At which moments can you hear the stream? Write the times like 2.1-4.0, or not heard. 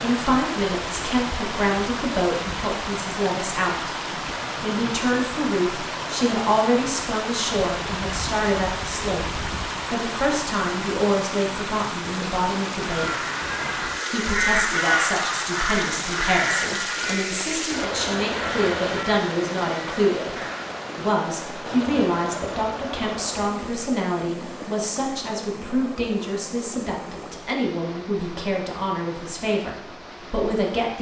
0.0-30.9.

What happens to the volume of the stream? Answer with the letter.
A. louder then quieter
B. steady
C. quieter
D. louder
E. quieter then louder
C.